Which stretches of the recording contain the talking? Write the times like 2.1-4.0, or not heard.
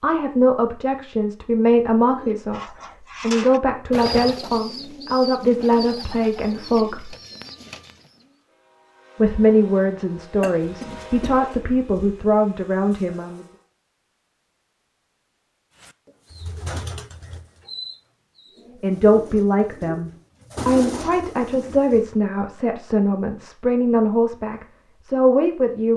0.0-7.2, 9.2-13.4, 18.8-25.9.